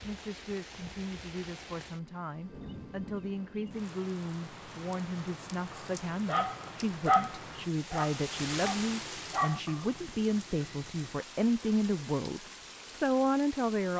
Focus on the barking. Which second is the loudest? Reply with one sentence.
The loudest moment of the barking is at 7 seconds.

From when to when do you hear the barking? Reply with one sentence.
The barking can be heard from 5.8 to 9.8 s.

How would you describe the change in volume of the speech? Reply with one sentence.
The loudness of the speech goes up.